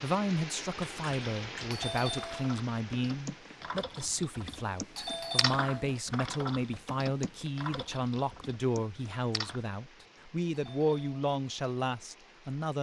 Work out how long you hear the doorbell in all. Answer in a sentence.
You can hear the doorbell for 3 seconds altogether.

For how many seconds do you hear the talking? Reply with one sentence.
The talking can be heard for 13 seconds in total.